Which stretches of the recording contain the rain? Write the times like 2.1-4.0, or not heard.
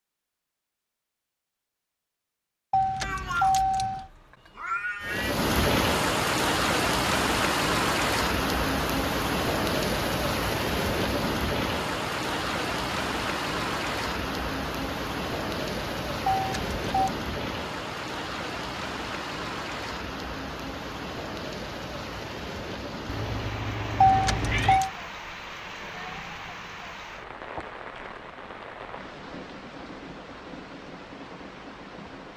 5.0-32.3.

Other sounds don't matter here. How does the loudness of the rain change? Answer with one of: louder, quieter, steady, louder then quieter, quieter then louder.
quieter.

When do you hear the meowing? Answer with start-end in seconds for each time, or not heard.
3.0-5.3, 23.1-24.8.